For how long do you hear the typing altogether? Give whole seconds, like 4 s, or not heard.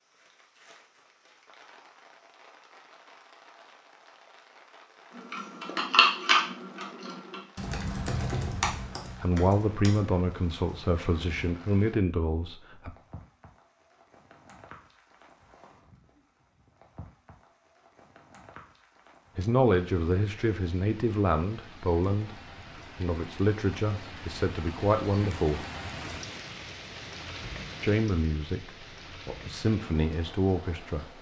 6 s.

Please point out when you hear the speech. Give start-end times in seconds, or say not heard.
9.2-12.9, 19.4-25.6, 27.8-31.1.